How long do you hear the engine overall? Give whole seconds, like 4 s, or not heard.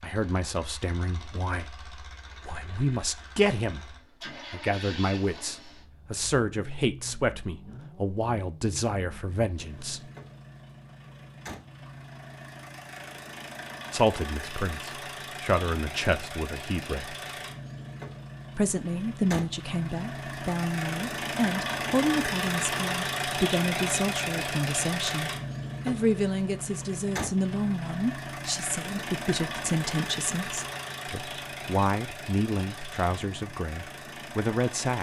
35 s.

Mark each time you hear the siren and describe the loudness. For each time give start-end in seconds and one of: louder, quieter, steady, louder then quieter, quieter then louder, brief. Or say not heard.
not heard.